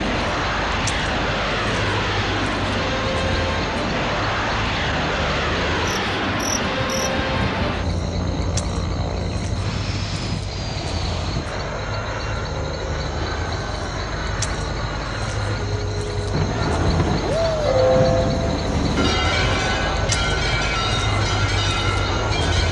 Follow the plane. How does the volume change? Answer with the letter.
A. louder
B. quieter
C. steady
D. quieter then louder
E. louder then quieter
B.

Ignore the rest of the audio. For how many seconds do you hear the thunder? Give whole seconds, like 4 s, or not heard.
3 s.